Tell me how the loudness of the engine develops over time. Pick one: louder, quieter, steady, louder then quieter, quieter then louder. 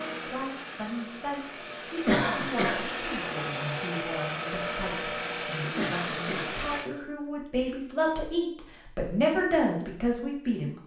louder.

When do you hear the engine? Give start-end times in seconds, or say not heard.
0.0-6.9.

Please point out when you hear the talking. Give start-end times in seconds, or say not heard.
0.0-10.8.